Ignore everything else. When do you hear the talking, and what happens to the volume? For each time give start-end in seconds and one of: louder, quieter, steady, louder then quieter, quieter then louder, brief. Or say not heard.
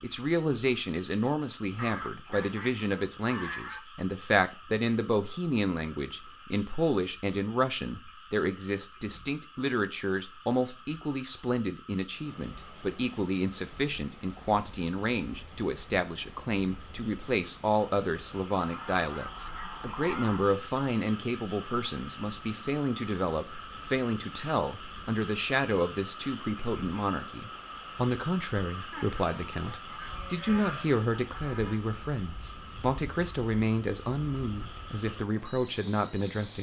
0.0-36.5 steady.